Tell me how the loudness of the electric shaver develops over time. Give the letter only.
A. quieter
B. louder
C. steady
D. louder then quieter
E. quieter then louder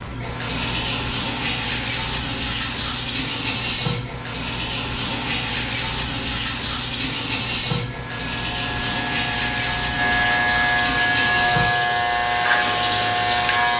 B.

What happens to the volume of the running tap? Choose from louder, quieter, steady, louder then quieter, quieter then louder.
steady.